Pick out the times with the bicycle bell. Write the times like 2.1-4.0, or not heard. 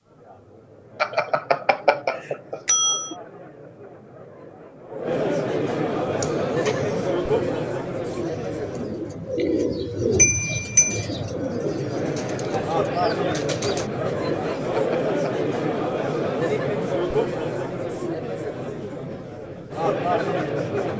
1.0-3.1, 10.2-11.1, 14.7-15.3.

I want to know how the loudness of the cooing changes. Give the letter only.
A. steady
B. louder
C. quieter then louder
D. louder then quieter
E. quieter
D.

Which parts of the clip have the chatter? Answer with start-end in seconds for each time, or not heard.
0.0-20.9.